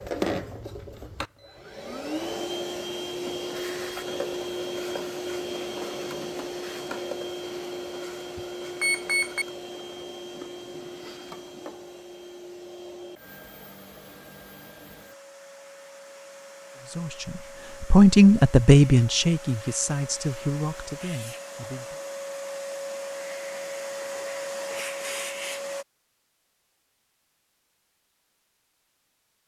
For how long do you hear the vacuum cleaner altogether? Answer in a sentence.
The vacuum cleaner can be heard for 26 seconds in total.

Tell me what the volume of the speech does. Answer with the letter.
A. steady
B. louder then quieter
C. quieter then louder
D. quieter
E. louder
D.